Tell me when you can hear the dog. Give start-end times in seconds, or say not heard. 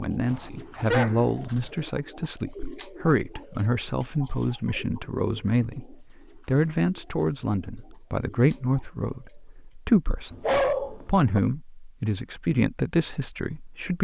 0.3-1.7, 10.3-11.4.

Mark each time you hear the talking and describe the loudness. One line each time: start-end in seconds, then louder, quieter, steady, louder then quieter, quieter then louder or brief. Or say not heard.
0.0-13.9 steady.